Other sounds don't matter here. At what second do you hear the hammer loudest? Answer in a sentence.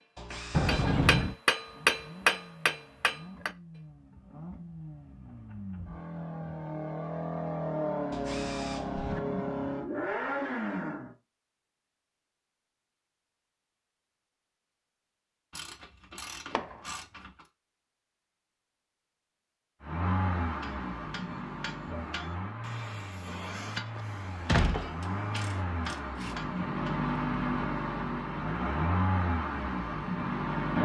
The loudest moment of the hammer is at 2 seconds.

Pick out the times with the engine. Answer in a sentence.
The engine can be heard from 1.5 to 11.2 s and from 19.8 to 30.7 s.